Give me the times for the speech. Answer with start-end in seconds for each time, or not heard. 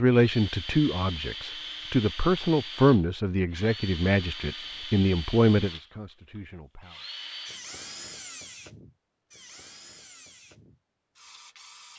0.0-7.0.